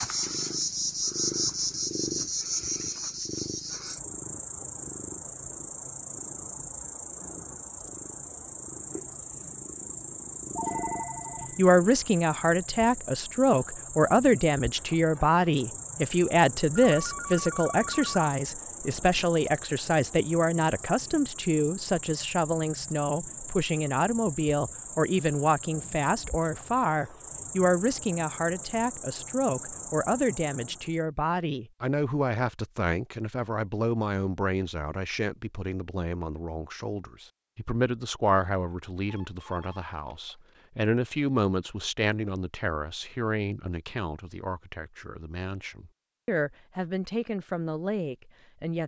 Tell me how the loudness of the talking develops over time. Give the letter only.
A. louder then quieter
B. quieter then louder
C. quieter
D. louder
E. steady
C.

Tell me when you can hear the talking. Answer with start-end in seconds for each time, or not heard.
11.6-48.8.